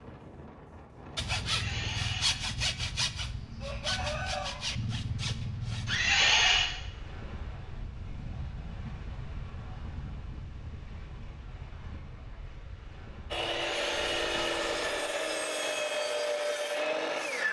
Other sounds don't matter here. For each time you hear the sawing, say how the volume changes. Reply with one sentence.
You can hear the sawing from 1.1 to 6.3 s, at a steady volume; and from 13.3 to 17.4 s, at a steady volume.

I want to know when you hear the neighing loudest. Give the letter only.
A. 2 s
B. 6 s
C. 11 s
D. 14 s
B.